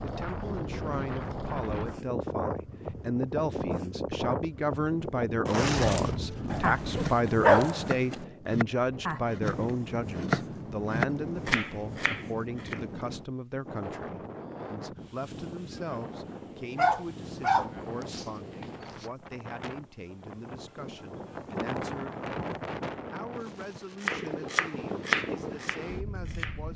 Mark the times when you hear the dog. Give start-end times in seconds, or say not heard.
6.5-8.2, 16.8-19.1.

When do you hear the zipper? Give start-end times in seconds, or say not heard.
5.5-7.2.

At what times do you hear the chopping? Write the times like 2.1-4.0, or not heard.
6.2-12.8, 24.0-26.6.